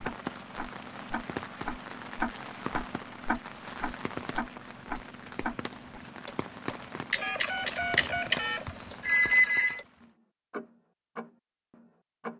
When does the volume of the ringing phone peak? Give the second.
9 s.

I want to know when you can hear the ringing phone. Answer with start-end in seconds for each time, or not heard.
7.1-9.8.